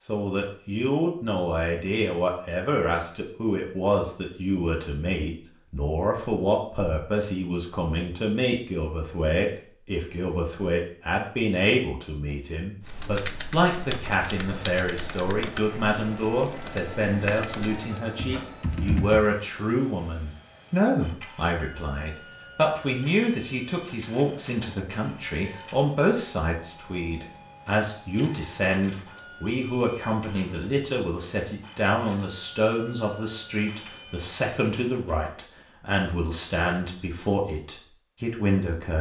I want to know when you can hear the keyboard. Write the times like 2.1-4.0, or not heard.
12.8-19.2.